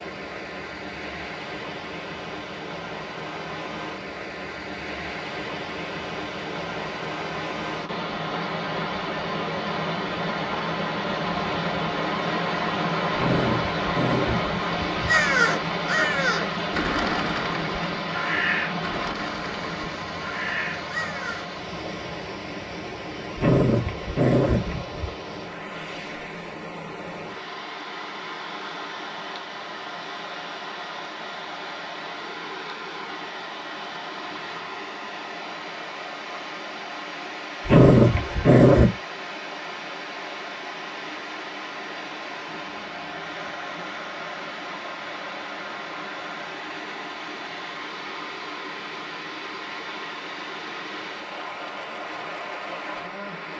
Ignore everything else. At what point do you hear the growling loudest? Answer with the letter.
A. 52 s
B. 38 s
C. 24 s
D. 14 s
B.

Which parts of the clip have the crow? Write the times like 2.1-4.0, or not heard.
15.1-21.4.